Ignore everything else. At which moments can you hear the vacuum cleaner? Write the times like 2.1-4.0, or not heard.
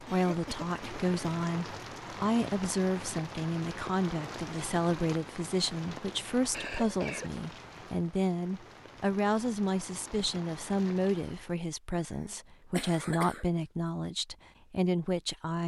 not heard.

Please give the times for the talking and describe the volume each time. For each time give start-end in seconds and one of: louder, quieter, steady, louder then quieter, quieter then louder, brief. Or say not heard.
0.0-15.6 steady.